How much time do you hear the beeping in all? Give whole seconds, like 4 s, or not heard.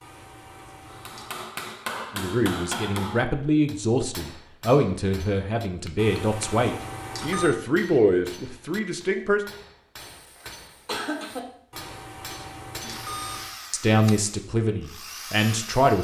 5 s.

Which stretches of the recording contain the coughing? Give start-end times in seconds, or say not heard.
9.9-11.4.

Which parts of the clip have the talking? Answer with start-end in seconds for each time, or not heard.
2.1-9.4, 13.7-16.0.